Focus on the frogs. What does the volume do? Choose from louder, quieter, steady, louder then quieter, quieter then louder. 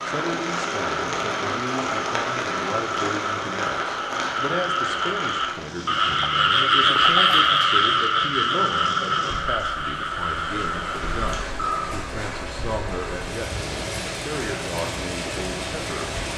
louder then quieter.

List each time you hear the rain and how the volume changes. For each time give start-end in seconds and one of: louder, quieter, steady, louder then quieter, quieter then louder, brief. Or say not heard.
0.0-16.3 quieter then louder.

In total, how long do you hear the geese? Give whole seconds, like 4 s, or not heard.
not heard.